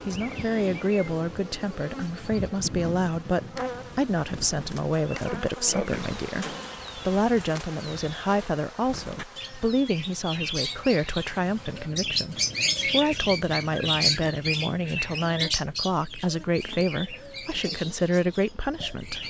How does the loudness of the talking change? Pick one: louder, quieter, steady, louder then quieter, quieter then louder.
steady.